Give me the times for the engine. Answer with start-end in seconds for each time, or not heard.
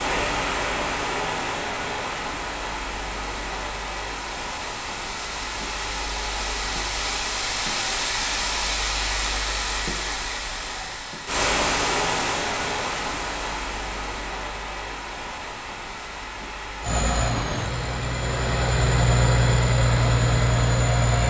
16.8-21.2.